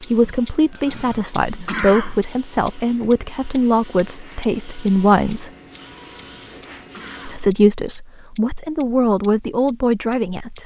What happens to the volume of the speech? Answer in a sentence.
The volume of the speech stays about the same.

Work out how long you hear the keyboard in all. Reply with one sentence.
The keyboard can't be heard in this clip.